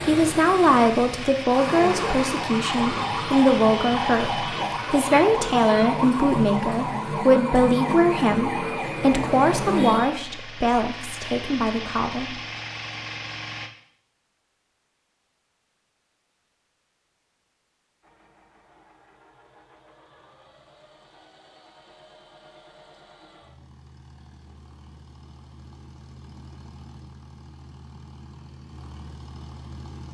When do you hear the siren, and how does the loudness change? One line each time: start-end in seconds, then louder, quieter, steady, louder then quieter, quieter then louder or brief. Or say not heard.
0.0-10.1 steady.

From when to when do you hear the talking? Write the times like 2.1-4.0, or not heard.
0.0-12.3.